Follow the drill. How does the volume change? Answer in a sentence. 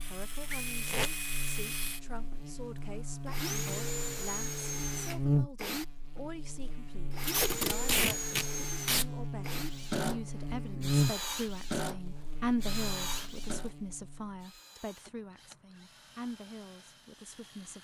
The loudness of the drill goes down.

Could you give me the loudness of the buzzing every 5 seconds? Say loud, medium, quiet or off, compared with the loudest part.
medium, loud, loud, off.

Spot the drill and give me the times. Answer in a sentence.
The drill can be heard from 0.0 to 17.8 s.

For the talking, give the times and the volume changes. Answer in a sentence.
The talking can be heard from 0.1 to 17.8 s, getting louder then quieter.